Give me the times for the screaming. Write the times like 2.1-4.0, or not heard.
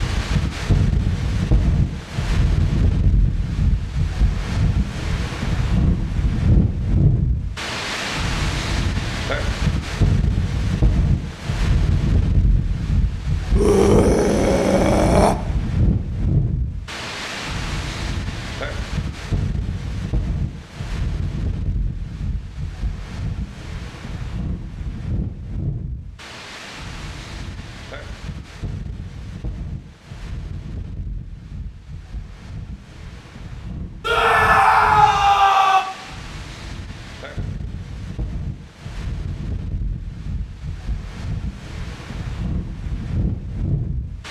13.6-15.3, 34.0-35.9.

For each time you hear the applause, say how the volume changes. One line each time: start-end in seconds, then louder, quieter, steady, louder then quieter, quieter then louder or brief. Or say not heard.
not heard.